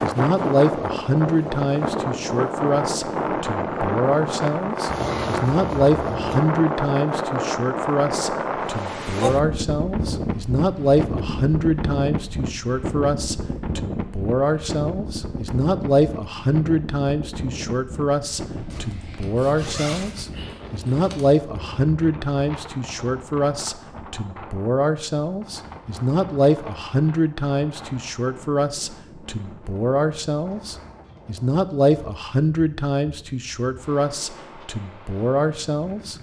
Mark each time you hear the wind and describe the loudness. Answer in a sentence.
You can hear the wind from 0.0 to 36.1 s, getting quieter.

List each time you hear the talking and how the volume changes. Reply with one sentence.
The talking can be heard from 0.0 to 36.1 s, at a steady volume.